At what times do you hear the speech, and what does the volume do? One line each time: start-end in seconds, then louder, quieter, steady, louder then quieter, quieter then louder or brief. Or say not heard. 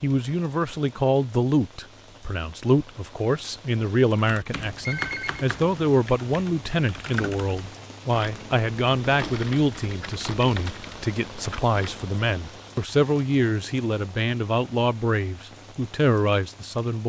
0.0-17.0 steady.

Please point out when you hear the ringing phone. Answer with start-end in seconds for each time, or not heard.
4.8-5.5.